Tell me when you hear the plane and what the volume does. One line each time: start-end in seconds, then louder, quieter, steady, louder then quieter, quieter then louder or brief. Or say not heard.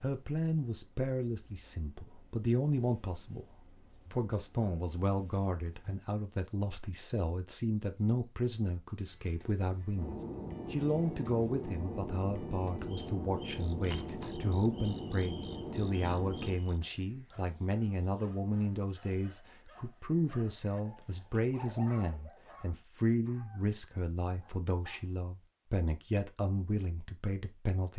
9.9-16.6 steady.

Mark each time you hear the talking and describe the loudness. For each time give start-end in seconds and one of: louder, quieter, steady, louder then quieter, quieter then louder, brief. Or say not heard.
0.0-27.9 steady.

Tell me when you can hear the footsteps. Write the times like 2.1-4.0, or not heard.
not heard.